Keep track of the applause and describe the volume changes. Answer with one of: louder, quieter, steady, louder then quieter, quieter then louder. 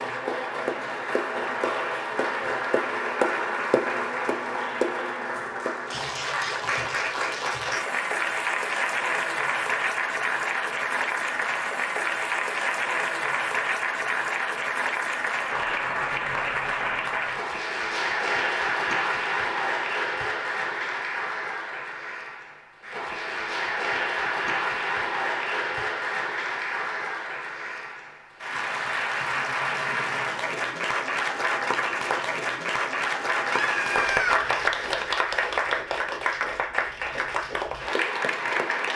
steady.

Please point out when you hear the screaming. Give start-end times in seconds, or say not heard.
33.4-34.4.